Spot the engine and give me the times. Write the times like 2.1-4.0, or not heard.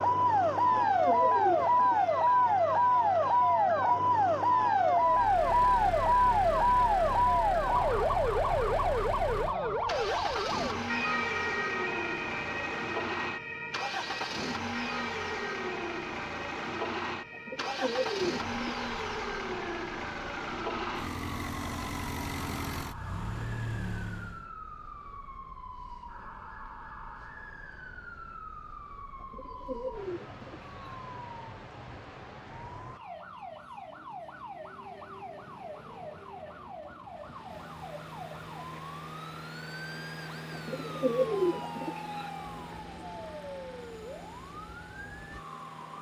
5.0-24.5, 37.0-45.9.